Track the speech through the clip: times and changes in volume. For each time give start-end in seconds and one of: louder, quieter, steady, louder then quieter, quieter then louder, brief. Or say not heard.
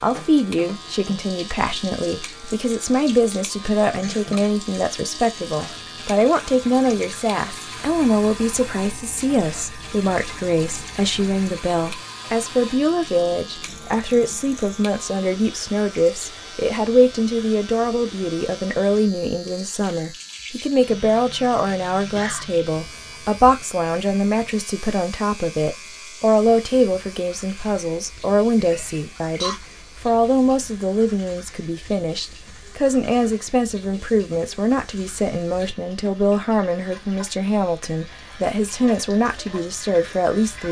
0.0-40.6 steady.